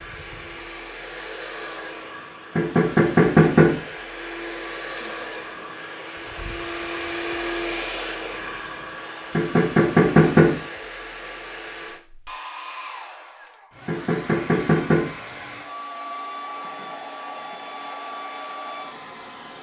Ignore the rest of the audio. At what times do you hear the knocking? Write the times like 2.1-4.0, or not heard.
2.5-3.8, 9.3-10.6, 13.8-15.1.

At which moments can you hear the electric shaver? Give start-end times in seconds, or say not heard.
not heard.